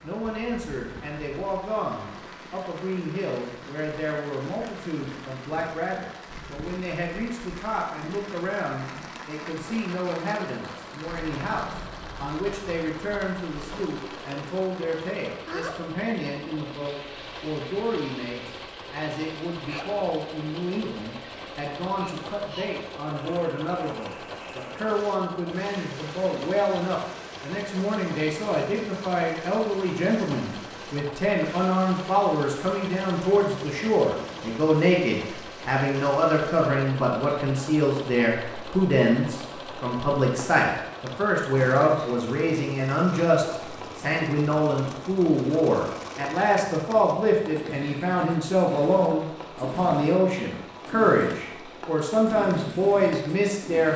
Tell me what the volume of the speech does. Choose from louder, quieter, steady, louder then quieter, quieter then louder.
louder.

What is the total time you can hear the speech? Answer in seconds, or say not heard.
54 s.